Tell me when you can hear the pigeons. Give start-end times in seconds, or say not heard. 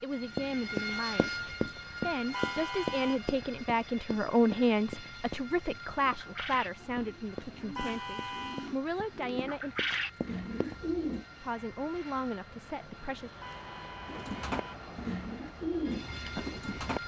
6.0-11.2, 14.1-17.0.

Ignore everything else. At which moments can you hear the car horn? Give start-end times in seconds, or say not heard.
2.3-3.2, 7.8-8.7, 13.4-14.8.